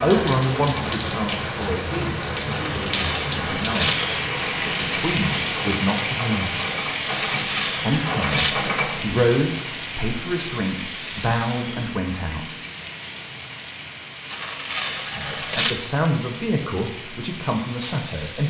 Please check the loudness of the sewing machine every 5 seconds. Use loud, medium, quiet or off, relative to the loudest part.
loud, loud, off, off.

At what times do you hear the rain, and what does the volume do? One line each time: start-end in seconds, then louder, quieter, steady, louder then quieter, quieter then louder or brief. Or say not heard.
0.0-18.4 quieter.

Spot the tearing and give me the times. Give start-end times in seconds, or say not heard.
2.5-4.0, 7.0-8.6, 14.3-15.8.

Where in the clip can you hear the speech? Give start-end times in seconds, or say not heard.
0.0-6.5, 7.8-12.4, 15.1-18.4.